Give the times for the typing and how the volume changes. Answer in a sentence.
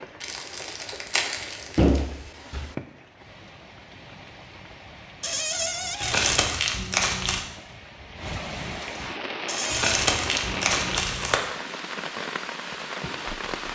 The typing can't be heard in this clip.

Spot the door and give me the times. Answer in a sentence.
The door can be heard from 1.8 to 2.8 s, from 5.2 to 6.3 s and from 9.4 to 9.9 s.